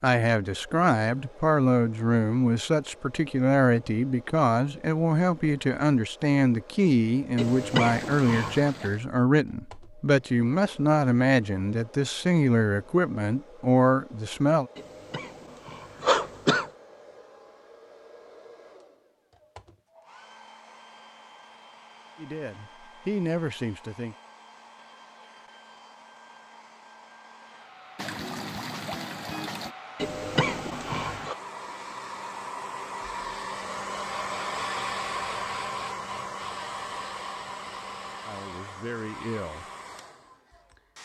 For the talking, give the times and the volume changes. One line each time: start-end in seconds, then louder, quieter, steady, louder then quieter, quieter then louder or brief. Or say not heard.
0.0-14.7 steady
22.1-24.1 brief
38.2-39.6 brief.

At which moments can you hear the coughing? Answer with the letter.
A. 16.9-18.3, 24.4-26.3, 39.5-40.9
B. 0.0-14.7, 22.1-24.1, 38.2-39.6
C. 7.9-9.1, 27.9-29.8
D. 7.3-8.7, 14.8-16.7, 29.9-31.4
D.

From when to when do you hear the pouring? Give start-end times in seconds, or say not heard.
7.9-9.1, 27.9-29.8.